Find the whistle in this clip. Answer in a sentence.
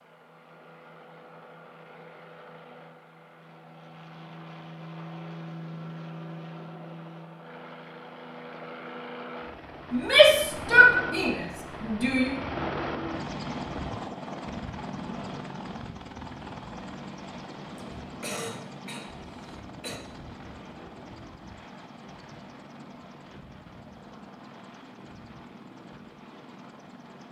You can't hear the whistle here.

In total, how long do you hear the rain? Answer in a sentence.
You can't hear the rain here.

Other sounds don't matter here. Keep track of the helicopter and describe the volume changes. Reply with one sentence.
The volume of the helicopter goes up, then down.